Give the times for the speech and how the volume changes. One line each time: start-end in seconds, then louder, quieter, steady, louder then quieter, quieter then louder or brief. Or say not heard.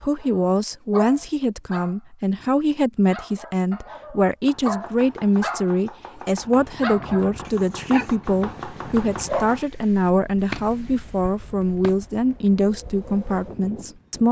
0.0-14.2 steady.